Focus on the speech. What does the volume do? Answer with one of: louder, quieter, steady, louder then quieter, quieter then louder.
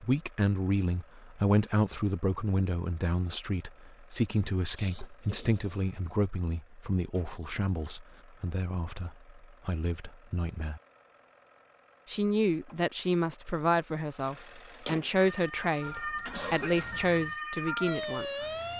quieter then louder.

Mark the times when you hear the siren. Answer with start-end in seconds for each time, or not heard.
15.2-18.7.